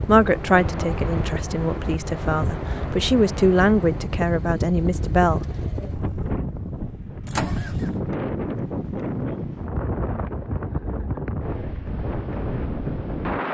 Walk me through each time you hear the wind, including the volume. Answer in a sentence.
You can hear the wind from 0.0 to 13.4 s, at a steady volume.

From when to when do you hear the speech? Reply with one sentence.
The speech can be heard from 0.1 to 5.9 s.